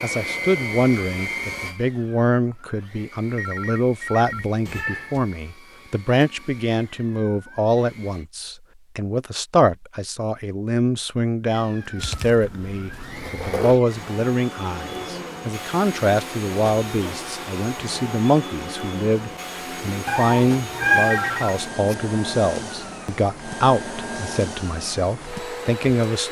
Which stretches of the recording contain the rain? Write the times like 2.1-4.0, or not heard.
not heard.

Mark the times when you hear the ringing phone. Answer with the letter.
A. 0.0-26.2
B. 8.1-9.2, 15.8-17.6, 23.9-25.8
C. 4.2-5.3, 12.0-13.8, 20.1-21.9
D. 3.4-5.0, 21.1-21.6
D.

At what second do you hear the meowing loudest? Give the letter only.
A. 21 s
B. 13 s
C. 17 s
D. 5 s
A.